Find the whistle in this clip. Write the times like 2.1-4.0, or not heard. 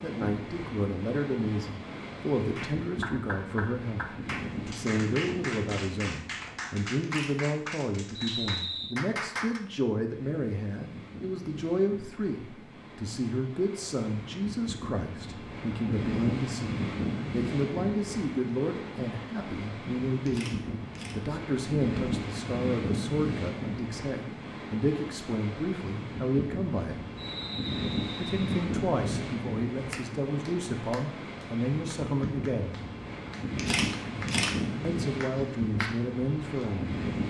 8.2-9.0, 27.1-28.6.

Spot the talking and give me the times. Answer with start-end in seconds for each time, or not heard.
0.0-27.0, 28.1-32.8, 34.8-37.0.